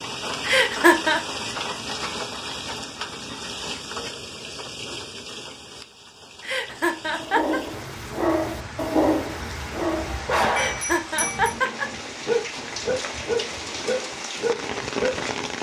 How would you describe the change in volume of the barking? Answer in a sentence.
The loudness of the barking goes down, then up.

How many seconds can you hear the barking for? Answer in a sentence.
You can hear the barking for 8 seconds altogether.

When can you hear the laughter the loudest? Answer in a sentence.
The volume of the laughter peaks at 1 second.